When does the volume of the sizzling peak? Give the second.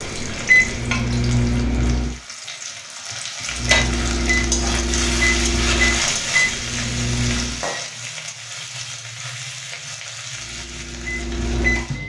6 s.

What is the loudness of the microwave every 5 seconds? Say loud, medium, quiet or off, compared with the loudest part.
loud, loud, medium.